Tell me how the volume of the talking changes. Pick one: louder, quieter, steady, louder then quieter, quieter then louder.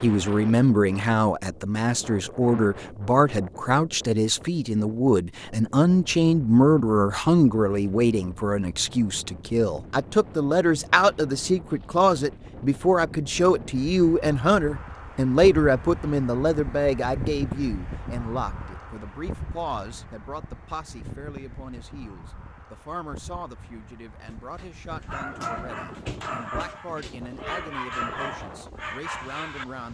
quieter.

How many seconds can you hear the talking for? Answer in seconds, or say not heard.
30 s.